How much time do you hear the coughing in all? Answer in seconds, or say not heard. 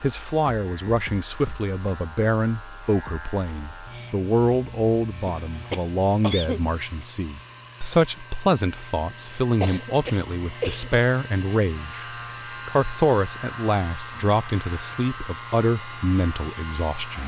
3 s.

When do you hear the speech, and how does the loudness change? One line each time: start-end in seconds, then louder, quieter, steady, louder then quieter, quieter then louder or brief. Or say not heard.
0.0-17.2 steady.